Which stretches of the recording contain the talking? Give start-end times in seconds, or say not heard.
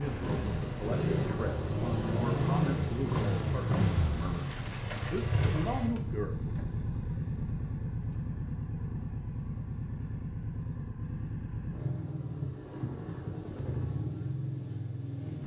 0.0-6.5.